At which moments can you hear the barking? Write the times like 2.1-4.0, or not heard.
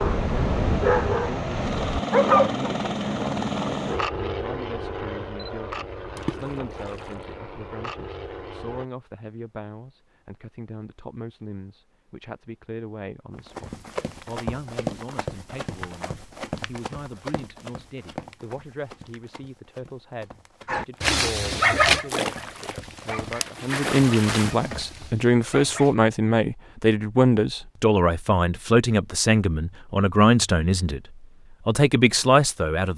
0.0-2.6, 20.6-25.9.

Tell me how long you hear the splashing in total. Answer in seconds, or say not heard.
4 s.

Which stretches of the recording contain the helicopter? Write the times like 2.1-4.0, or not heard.
0.0-8.8.